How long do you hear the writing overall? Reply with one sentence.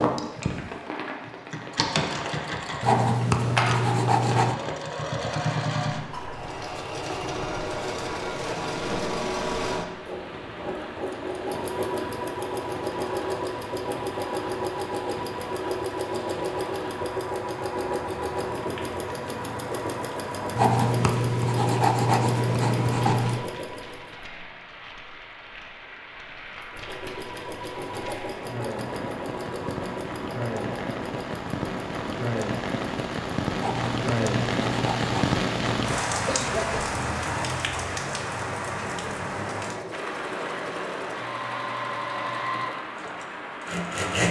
You can hear the writing for 7 seconds altogether.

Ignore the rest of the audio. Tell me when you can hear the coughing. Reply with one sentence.
The coughing can be heard from 36.2 to 37.0 s.